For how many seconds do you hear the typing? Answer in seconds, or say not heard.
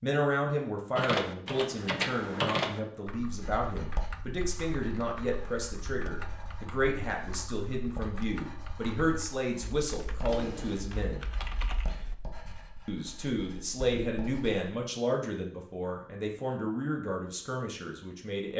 11 s.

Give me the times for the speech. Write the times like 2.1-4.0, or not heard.
0.0-11.3, 12.8-18.5.